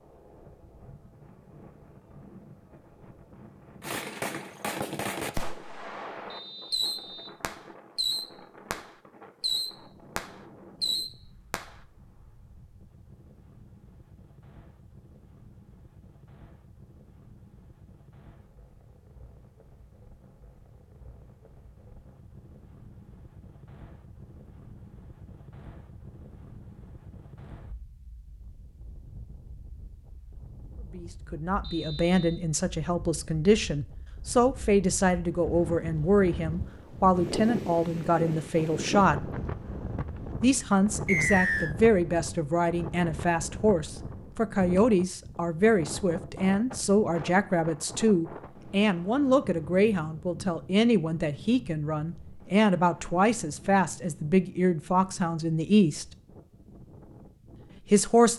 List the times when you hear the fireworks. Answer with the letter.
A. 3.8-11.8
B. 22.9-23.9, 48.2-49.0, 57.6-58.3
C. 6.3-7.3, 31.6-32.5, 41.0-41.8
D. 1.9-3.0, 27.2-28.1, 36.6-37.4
A.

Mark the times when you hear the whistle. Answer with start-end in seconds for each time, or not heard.
6.3-7.3, 31.6-32.5, 41.0-41.8.